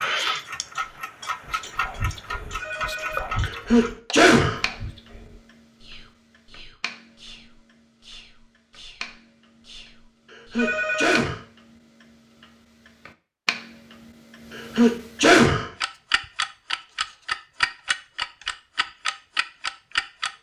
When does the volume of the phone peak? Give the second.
11 s.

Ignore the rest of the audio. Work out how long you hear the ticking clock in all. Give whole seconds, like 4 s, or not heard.
20 s.